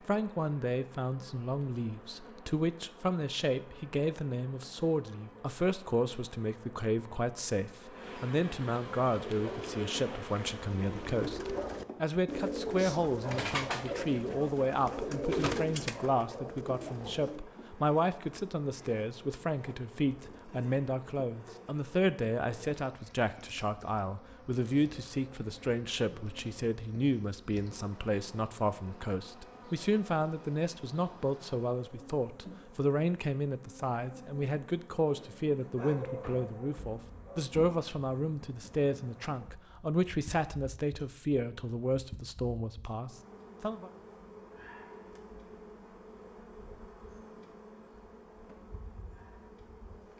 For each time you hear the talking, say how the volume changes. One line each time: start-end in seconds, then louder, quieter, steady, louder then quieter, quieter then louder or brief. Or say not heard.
0.1-43.9 steady.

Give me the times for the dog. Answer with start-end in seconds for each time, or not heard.
35.8-37.5.